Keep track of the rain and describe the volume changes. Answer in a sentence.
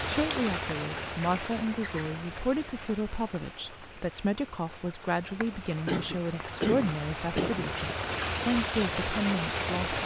The loudness of the rain goes down, then up.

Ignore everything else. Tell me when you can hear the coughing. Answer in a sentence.
The coughing can be heard from 5.8 to 7.7 s.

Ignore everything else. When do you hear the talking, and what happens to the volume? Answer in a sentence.
The talking can be heard from 0.1 to 10.0 s, at a steady volume.